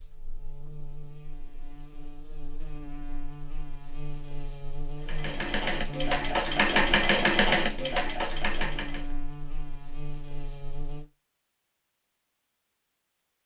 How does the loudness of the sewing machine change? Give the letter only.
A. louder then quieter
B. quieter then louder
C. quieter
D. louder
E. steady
A.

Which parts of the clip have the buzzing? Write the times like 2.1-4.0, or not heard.
0.0-11.1.